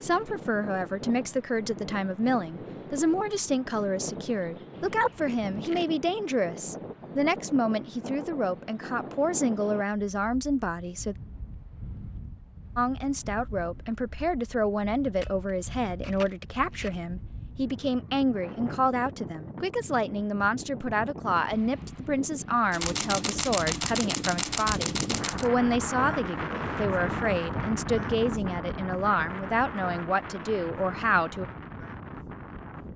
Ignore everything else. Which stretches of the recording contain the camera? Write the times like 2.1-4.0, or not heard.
4.7-5.9, 15.2-16.9, 22.7-25.4.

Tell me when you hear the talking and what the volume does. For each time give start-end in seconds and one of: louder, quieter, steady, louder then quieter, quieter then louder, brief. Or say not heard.
0.0-11.2 steady
12.8-31.4 steady.